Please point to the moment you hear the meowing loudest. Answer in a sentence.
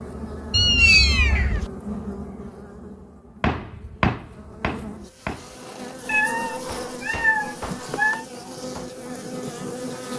The loudest moment of the meowing is at 1 second.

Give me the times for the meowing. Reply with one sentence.
The meowing can be heard from 0.5 to 1.7 s and from 6.0 to 8.2 s.